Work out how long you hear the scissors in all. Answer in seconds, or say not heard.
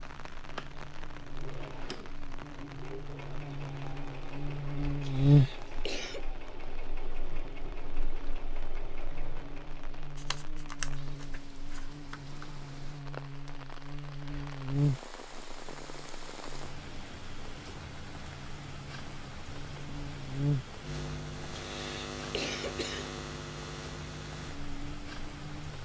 2 s.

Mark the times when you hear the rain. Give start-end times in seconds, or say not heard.
0.0-25.8.